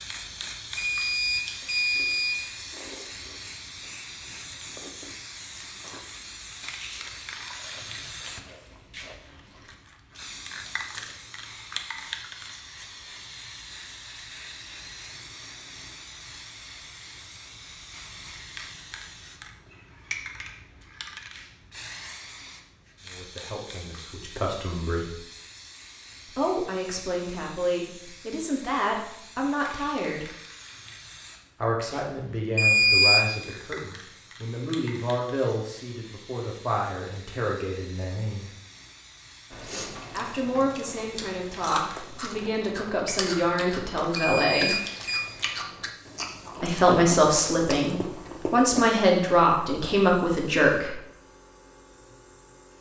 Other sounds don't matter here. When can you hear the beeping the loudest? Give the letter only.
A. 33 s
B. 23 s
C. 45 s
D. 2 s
A.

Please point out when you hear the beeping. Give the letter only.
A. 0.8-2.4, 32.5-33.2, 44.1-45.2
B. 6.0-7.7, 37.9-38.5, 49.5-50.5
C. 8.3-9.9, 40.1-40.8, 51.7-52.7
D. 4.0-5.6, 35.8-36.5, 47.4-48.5
A.